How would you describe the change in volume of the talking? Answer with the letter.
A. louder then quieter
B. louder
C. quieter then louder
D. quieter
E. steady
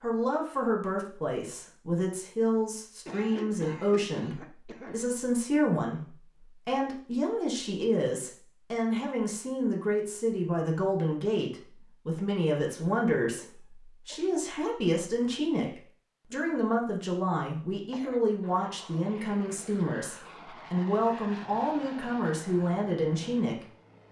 E.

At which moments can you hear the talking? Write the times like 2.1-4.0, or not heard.
0.0-23.6.